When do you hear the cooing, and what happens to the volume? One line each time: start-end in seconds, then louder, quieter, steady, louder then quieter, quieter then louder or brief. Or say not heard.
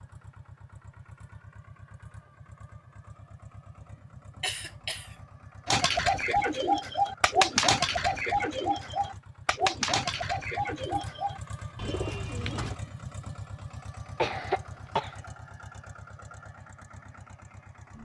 5.7-12.8 quieter.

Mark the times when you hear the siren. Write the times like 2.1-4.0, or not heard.
not heard.